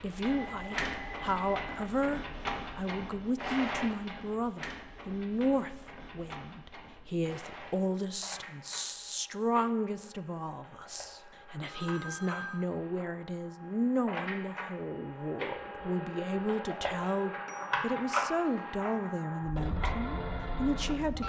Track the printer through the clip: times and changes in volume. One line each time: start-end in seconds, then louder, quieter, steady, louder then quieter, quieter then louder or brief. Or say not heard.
0.0-21.2 quieter then louder.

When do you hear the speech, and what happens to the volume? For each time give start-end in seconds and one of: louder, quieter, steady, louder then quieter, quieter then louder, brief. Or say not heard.
0.0-21.2 steady.